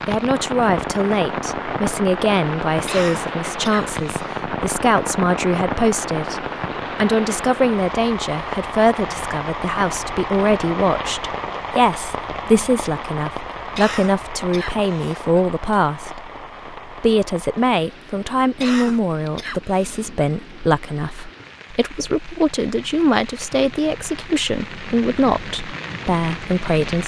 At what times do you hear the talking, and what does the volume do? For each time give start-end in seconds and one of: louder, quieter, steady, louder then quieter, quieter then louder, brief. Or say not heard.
0.1-27.0 steady.